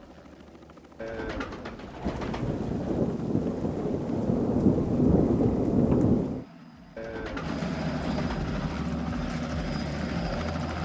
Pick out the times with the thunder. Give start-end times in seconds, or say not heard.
2.0-6.5.